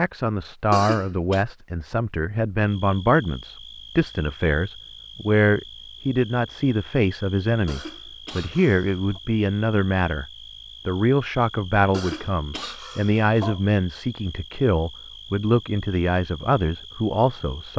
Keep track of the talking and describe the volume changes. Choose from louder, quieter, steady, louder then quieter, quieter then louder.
steady.